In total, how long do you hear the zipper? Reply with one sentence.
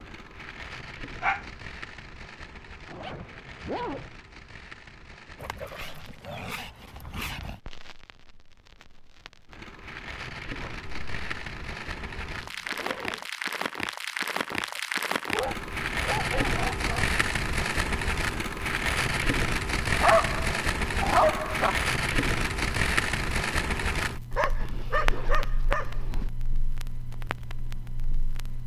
The zipper can be heard for 4 seconds in total.